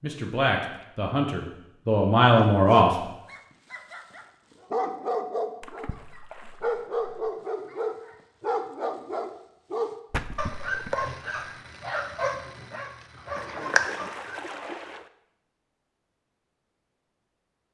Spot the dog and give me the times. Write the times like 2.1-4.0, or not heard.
2.3-14.6.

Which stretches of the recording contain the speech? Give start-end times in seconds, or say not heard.
0.0-2.9.